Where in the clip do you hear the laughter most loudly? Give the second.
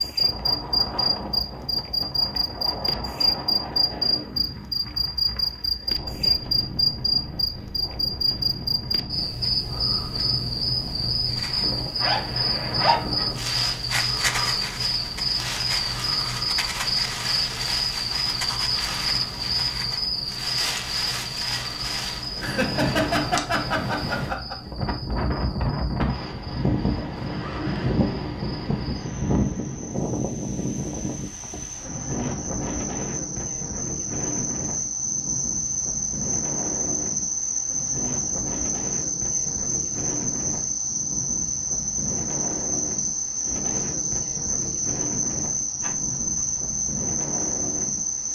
23 s.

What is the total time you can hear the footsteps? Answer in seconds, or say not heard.
not heard.